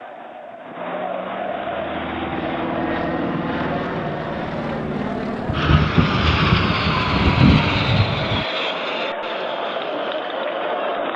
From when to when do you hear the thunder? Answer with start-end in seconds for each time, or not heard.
5.5-8.4.